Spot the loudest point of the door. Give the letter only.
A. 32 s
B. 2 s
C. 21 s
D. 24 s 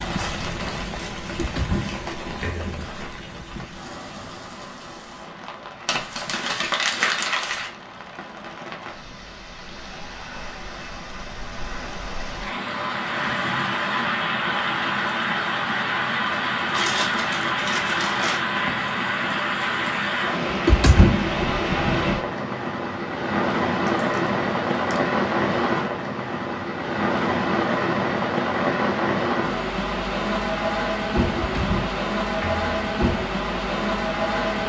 C.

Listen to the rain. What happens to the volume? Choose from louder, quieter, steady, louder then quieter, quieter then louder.
louder.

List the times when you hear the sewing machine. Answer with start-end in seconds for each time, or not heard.
not heard.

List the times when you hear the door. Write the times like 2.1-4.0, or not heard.
1.2-2.9, 20.5-21.3, 31.4-32.6.